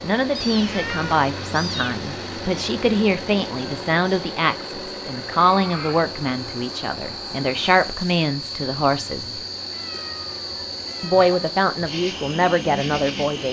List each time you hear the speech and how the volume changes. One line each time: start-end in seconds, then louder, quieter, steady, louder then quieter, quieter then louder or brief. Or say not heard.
0.0-9.4 steady
11.0-13.4 brief.